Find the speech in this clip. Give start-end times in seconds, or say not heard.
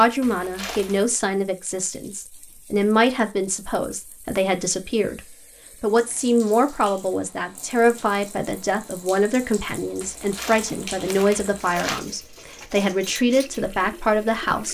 0.0-14.6.